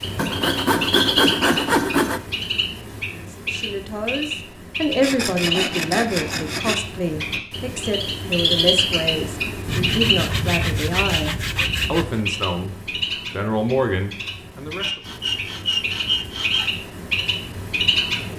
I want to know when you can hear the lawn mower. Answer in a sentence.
You can't hear the lawn mower here.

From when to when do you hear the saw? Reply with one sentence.
The saw can be heard from 0.1 to 2.2 s, from 5.0 to 6.8 s, from 9.7 to 12.2 s and from 14.8 to 16.8 s.